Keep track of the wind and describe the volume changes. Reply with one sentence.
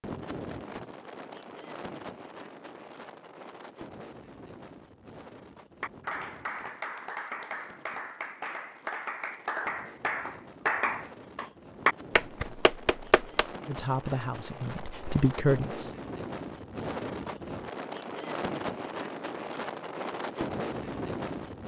The volume of the wind goes down, then up.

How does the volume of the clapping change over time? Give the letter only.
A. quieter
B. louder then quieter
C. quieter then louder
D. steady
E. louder
E.